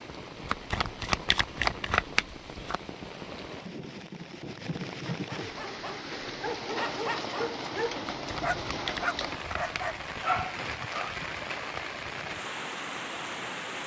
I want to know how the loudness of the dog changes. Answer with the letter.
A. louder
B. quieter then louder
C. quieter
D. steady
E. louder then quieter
A.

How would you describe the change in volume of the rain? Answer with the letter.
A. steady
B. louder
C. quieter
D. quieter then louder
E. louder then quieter
B.